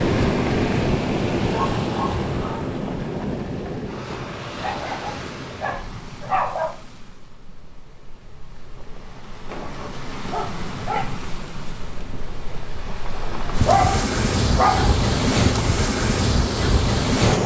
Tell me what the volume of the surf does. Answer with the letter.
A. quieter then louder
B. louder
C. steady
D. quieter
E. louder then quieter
A.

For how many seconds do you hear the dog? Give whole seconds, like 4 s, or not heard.
7 s.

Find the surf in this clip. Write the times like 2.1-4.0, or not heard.
0.0-17.4.